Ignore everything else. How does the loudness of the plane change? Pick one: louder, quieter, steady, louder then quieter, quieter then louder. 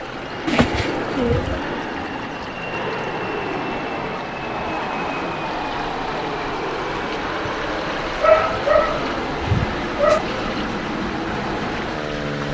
steady.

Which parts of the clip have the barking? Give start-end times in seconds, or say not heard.
8.2-10.2.